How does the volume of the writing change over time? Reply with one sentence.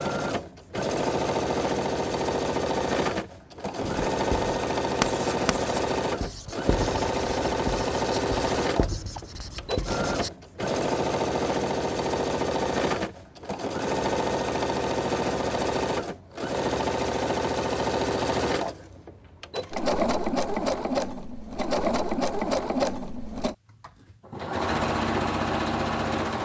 The loudness of the writing goes down.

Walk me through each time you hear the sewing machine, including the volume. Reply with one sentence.
The sewing machine can be heard from 0.0 to 26.3 s, at a steady volume.